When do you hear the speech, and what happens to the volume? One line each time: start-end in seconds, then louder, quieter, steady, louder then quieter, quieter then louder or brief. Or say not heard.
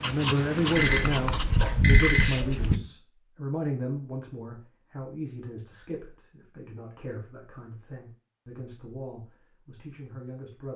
0.0-10.7 quieter.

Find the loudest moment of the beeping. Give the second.
2 s.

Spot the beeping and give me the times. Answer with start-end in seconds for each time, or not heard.
0.8-2.8.